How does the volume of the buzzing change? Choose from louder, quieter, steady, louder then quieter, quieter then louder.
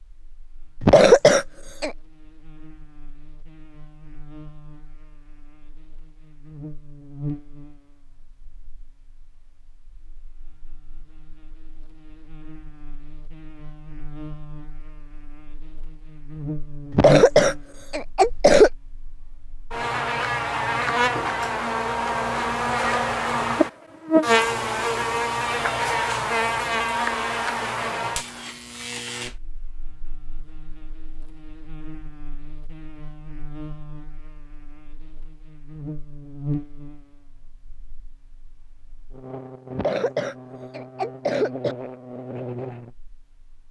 louder then quieter.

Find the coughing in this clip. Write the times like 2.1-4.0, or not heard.
0.8-1.9, 16.9-18.7, 39.8-41.8.